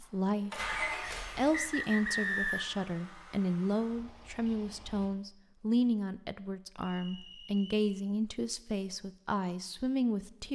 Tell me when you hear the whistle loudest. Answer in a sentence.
The loudest moment of the whistle is at 2 seconds.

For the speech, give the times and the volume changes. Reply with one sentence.
You can hear the speech from 0.0 to 10.4 s, at a steady volume.